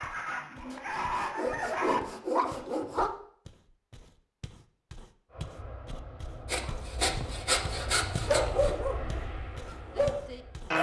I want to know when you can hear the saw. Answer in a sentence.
The saw can be heard from 0.7 to 3.0 s and from 6.5 to 8.7 s.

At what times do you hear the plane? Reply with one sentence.
The plane can be heard from 5.3 to 10.7 s.